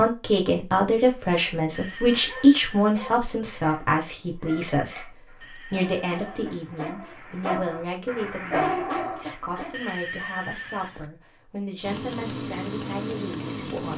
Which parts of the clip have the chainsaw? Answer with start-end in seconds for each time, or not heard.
11.8-13.9.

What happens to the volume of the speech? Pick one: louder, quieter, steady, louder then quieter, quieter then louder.
quieter.